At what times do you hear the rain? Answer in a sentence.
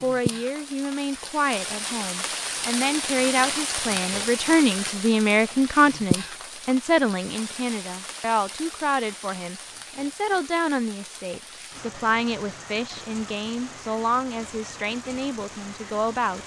You can hear the rain from 0.0 to 16.4 s.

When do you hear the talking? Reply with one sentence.
You can hear the talking from 0.0 to 16.4 s.